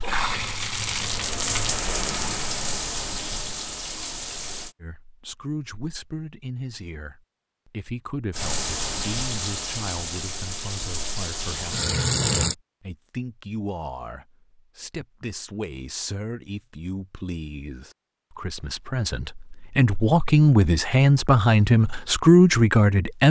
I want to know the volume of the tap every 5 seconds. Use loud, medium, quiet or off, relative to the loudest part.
loud, loud, loud, off, off.